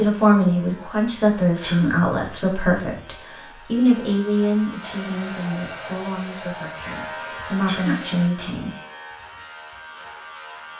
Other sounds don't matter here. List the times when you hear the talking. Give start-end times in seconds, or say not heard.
0.0-8.7.